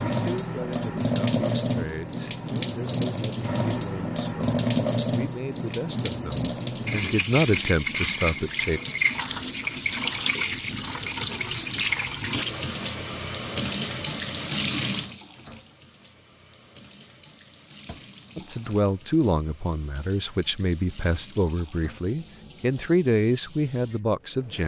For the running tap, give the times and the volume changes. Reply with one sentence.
You can hear the running tap from 0.0 to 24.6 s, getting quieter.